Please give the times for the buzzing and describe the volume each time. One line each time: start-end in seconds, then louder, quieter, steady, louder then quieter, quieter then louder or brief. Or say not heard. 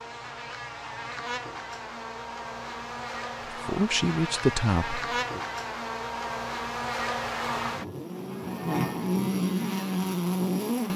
0.0-10.9 louder.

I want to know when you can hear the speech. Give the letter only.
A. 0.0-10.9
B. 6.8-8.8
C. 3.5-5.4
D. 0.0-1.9
C.